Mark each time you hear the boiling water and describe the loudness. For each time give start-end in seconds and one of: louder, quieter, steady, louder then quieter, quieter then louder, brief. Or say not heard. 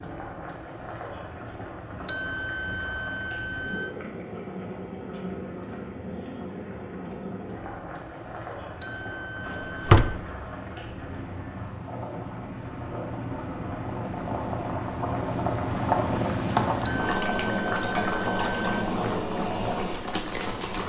0.0-20.8 louder.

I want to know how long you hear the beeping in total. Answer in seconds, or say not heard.
5 s.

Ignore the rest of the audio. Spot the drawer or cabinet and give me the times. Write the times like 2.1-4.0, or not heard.
9.4-10.2.